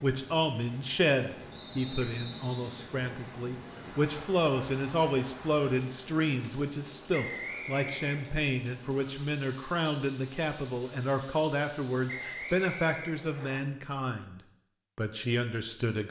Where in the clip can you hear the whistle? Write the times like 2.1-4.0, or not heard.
1.5-2.7, 7.1-8.2, 12.1-13.6.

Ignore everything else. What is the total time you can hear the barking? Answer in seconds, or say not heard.
not heard.